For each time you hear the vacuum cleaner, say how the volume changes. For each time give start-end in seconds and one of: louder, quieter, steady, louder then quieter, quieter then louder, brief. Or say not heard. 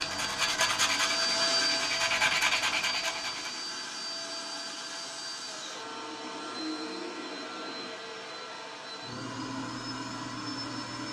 0.0-11.0 quieter.